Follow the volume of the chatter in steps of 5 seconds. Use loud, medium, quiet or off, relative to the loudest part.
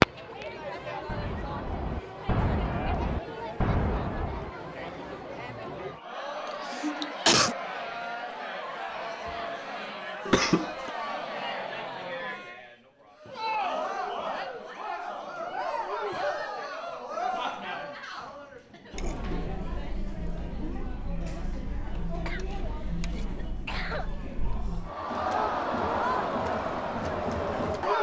medium, medium, medium, medium, medium, loud.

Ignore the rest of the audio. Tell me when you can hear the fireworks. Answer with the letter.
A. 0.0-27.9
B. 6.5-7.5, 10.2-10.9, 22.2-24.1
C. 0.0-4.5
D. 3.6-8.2
C.